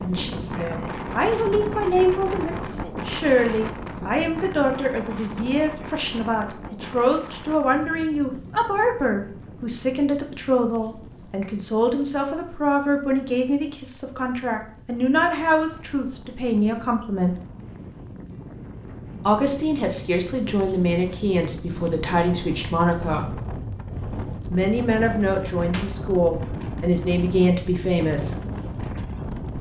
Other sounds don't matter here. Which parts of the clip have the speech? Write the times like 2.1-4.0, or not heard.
0.0-17.4, 19.2-23.4, 24.5-28.4.